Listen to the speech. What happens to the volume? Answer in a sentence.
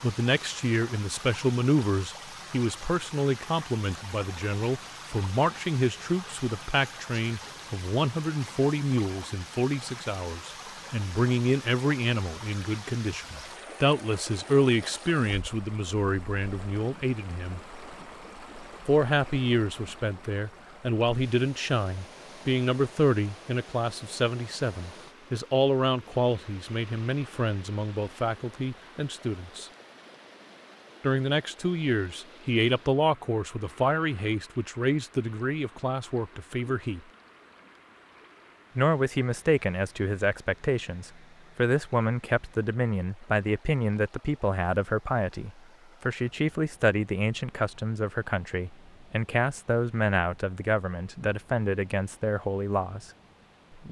The volume of the speech stays about the same.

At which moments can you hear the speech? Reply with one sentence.
The speech can be heard from 0.0 to 17.6 s, from 18.9 to 29.7 s, from 31.0 to 37.0 s and from 38.8 to 53.0 s.